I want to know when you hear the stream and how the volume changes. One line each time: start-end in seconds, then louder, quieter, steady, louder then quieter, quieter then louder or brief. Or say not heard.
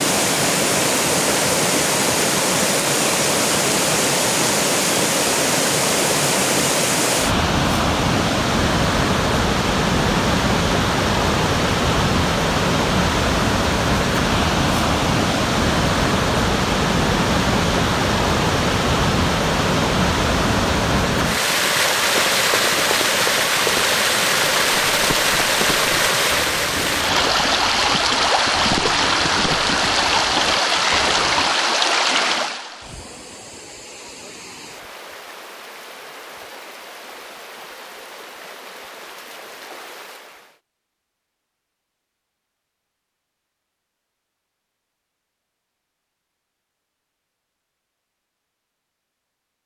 0.0-40.6 quieter.